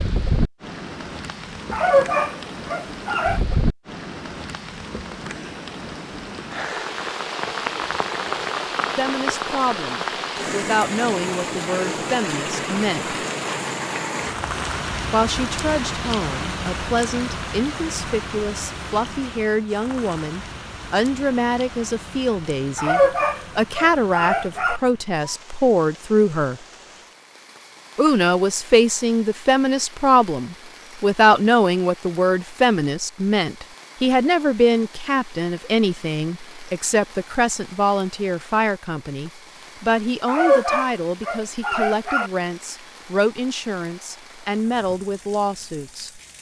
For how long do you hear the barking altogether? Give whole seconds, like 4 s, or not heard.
6 s.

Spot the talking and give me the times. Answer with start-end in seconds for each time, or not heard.
8.9-13.2, 15.1-26.6, 27.9-46.2.